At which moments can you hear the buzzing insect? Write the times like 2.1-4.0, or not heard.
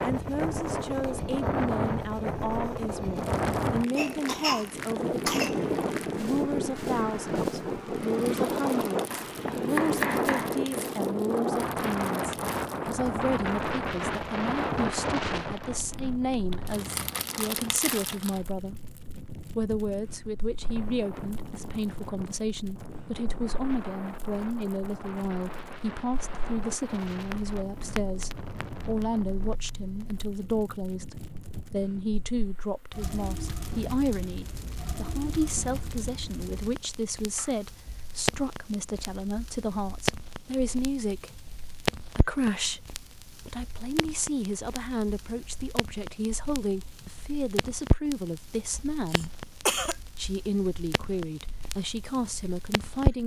not heard.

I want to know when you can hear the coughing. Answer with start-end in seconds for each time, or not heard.
4.0-5.6, 49.1-50.0.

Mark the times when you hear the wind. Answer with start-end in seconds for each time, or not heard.
0.0-32.5.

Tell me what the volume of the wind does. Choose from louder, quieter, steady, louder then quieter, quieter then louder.
quieter.